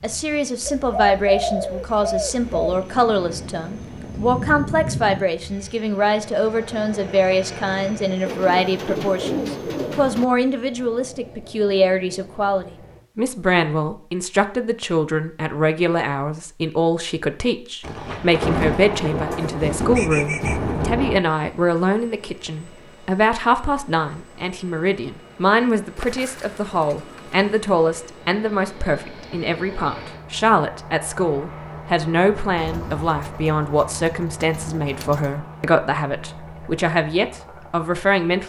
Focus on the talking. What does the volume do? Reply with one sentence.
The loudness of the talking stays about the same.